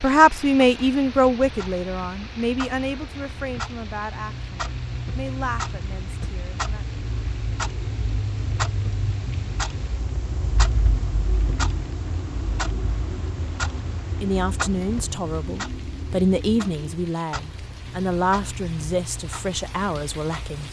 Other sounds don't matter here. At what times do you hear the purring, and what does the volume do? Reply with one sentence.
You can't hear the purring here.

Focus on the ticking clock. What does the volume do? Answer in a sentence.
The volume of the ticking clock goes up, then down.